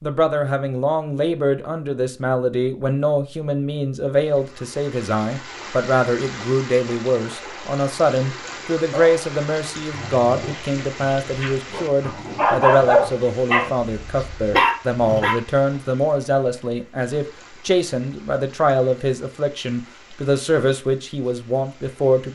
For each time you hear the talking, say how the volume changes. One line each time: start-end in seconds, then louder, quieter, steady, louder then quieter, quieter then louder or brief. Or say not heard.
0.0-22.2 steady.